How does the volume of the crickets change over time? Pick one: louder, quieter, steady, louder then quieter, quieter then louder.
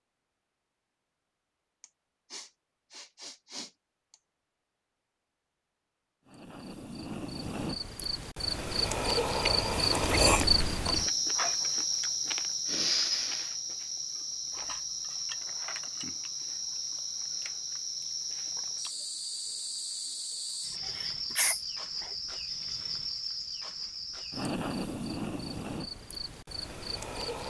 quieter.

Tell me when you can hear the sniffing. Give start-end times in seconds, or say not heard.
1.8-4.2, 12.7-13.6, 20.9-22.1.